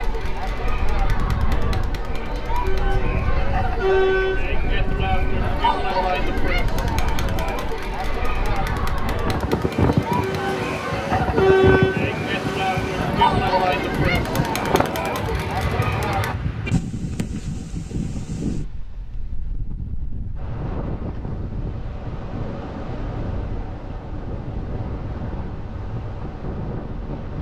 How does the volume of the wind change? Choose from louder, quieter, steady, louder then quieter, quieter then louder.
louder then quieter.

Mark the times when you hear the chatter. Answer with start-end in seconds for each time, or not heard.
0.0-16.4.